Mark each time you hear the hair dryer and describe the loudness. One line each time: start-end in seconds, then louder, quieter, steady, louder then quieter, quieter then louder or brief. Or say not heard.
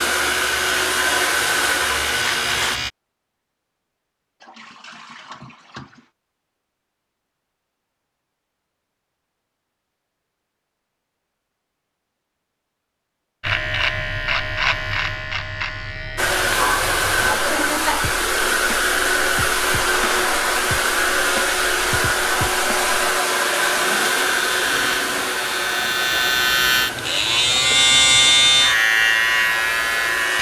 0.0-2.8 brief
16.1-30.3 quieter.